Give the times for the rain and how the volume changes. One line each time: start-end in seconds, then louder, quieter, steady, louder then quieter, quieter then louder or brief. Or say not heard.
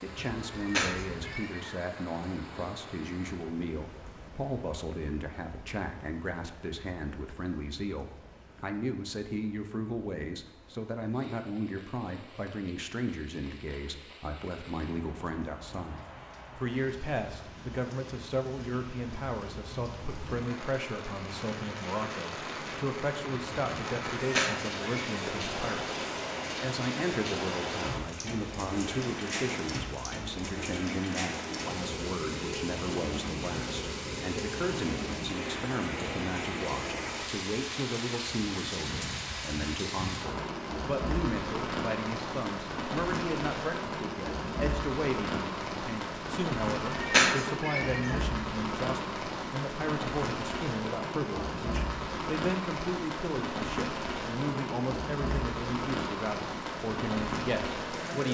0.0-58.2 louder.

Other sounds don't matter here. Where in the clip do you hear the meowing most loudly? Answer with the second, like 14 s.
47 s.